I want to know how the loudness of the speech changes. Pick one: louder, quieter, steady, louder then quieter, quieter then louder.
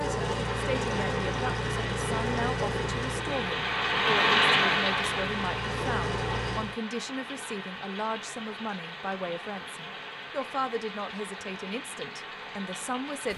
steady.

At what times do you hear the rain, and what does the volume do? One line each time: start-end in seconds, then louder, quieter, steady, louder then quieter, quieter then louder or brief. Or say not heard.
0.4-13.3 louder then quieter.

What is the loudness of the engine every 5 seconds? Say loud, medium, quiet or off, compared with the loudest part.
loud, loud, off.